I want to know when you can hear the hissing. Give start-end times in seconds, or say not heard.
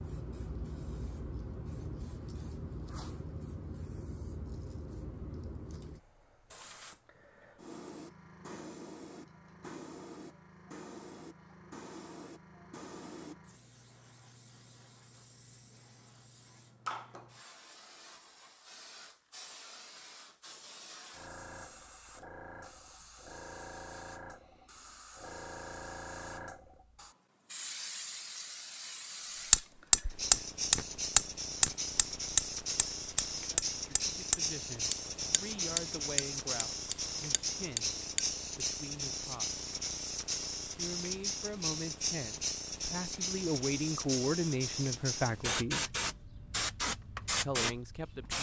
0.0-48.3.